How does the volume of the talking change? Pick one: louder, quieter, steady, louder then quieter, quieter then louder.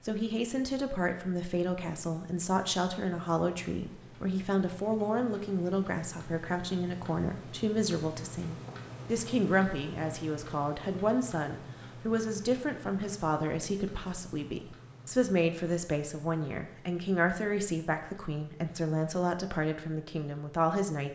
steady.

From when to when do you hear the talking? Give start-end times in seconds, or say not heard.
0.0-21.1.